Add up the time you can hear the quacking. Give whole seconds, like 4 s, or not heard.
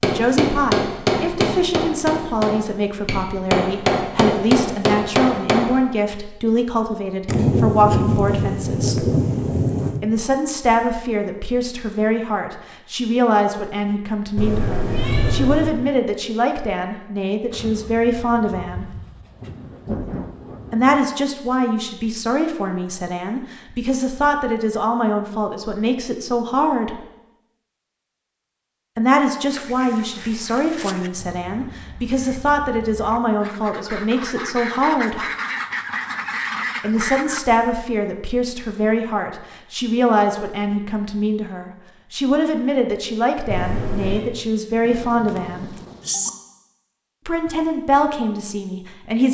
8 s.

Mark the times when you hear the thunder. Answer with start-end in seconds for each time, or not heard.
7.2-10.0, 17.5-21.0, 44.9-46.3.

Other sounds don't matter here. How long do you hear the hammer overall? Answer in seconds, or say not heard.
6 s.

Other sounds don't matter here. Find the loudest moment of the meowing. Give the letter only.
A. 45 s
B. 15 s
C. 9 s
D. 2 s
B.